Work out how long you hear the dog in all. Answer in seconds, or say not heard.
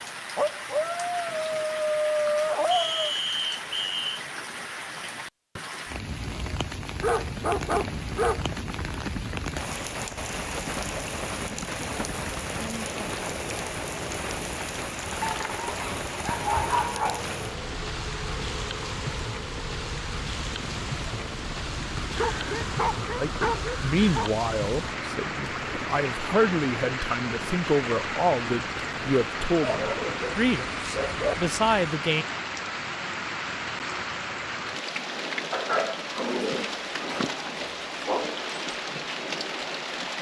13 s.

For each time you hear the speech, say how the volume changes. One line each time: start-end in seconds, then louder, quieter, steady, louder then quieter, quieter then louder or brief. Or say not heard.
23.1-32.2 steady.